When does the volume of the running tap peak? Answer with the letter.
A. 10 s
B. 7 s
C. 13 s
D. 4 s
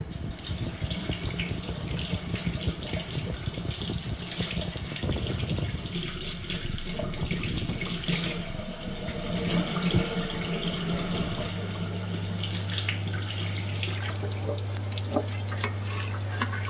A.